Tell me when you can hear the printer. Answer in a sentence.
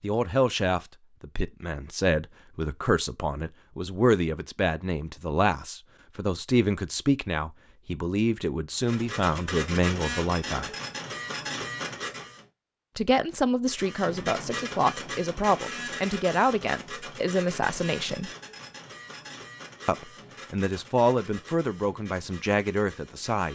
The printer can be heard from 8.8 to 12.4 s and from 13.7 to 23.4 s.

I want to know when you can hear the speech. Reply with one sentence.
You can hear the speech from 0.0 to 10.7 s, from 12.9 to 18.3 s and from 19.9 to 23.4 s.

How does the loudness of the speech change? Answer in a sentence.
The loudness of the speech stays about the same.